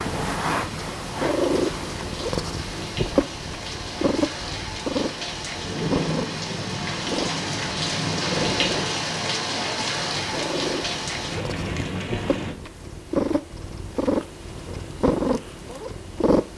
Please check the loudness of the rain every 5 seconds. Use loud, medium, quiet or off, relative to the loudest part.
medium, loud, loud, off.